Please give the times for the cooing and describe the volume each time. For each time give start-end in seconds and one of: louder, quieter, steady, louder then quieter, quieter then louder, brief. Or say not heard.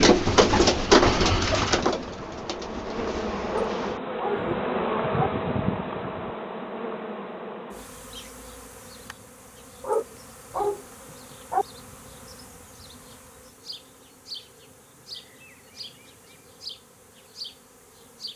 0.0-4.5 quieter.